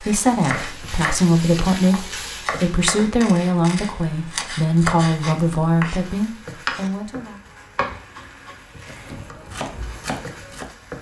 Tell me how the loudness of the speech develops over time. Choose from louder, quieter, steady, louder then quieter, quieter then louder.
steady.